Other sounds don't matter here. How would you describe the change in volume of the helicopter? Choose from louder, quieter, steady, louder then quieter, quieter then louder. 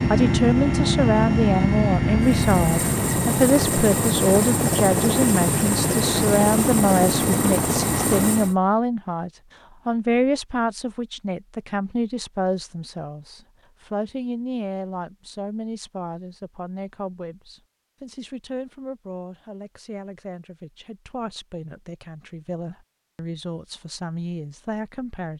steady.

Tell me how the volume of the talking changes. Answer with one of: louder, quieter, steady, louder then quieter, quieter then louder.
quieter.